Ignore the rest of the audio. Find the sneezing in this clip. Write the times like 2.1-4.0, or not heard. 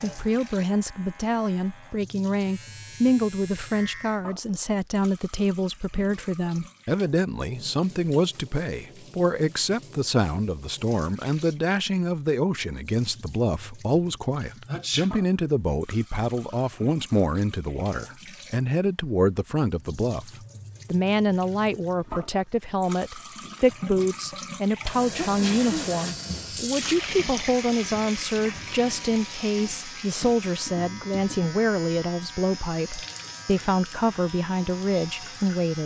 14.7-15.1, 25.1-26.0.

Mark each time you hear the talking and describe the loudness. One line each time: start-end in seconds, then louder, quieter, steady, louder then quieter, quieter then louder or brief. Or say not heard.
0.0-35.8 steady.